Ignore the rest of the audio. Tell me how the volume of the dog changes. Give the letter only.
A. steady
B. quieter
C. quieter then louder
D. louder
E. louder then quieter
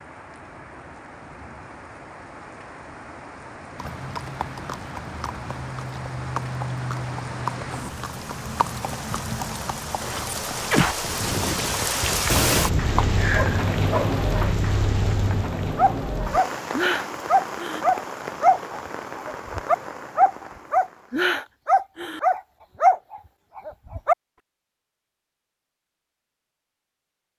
D.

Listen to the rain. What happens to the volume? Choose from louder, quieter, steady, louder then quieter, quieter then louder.
louder then quieter.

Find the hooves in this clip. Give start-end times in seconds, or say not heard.
3.8-13.1.